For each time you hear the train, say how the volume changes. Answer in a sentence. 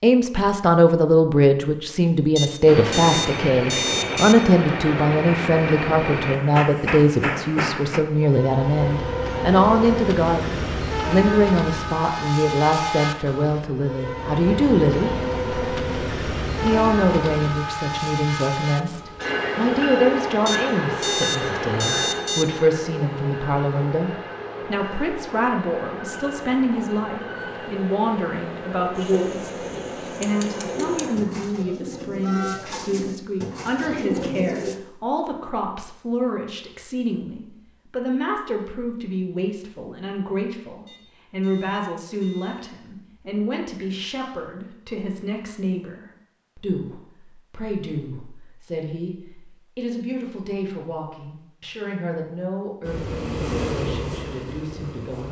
The train can be heard from 2.6 to 32.6 s, getting quieter; and briefly from 52.8 to 55.2 s.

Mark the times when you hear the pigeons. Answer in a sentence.
You can hear the pigeons from 28.9 to 34.8 s.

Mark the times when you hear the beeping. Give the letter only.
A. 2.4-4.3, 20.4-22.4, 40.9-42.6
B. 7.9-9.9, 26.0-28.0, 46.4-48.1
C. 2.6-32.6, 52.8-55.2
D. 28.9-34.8
A.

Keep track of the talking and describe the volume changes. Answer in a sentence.
The loudness of the talking goes down.